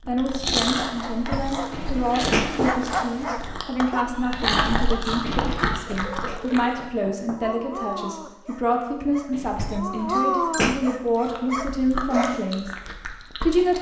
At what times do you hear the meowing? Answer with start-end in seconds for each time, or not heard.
not heard.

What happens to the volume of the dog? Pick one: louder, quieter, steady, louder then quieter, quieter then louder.
quieter then louder.